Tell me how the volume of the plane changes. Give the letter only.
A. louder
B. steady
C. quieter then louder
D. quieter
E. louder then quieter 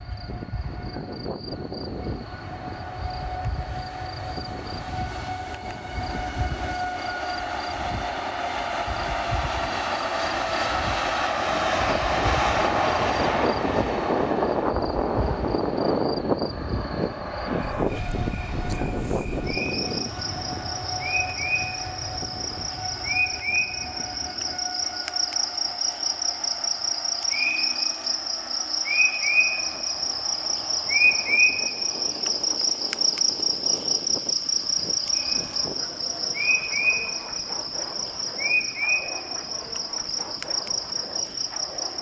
E.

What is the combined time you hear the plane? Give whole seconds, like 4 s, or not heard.
42 s.